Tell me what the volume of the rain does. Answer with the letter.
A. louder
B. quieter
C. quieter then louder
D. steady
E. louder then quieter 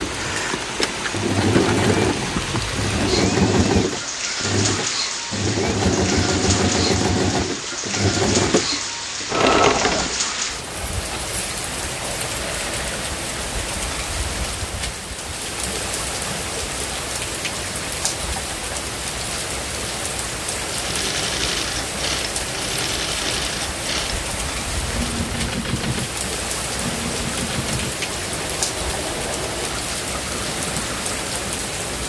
D.